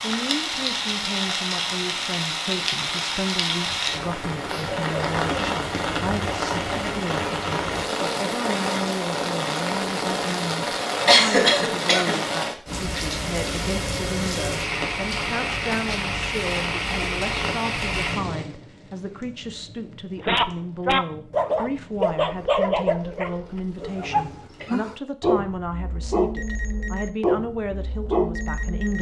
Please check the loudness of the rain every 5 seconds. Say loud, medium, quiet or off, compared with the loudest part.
loud, loud, loud, loud, quiet, off.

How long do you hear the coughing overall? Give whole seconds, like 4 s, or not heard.
3 s.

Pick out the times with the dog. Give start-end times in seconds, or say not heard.
20.2-28.9.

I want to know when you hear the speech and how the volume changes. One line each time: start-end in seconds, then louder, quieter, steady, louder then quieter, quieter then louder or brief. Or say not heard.
0.0-28.9 steady.